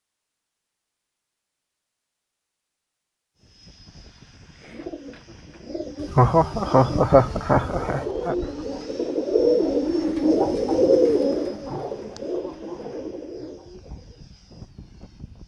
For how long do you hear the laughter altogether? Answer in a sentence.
You can hear the laughter for 2 seconds altogether.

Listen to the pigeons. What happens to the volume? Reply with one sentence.
The volume of the pigeons goes up, then down.